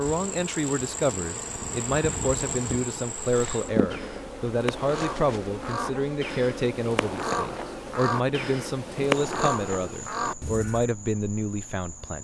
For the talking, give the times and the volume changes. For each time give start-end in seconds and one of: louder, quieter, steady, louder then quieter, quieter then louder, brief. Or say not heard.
0.0-12.1 steady.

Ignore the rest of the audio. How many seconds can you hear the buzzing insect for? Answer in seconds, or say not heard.
12 s.